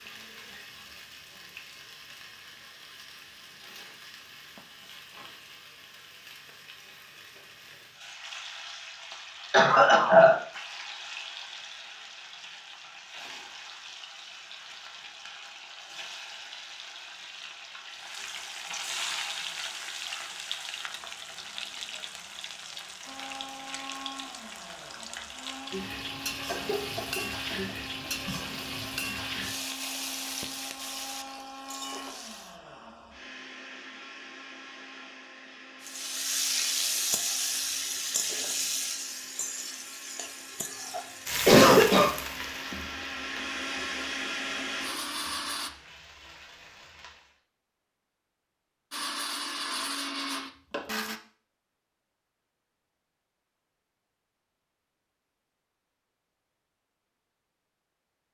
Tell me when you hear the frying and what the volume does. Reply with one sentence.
You can hear the frying from 0.0 to 32.5 s, getting louder; and from 35.8 to 47.4 s, getting quieter.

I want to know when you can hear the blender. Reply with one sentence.
You can hear the blender from 23.1 to 45.7 s and from 48.9 to 51.2 s.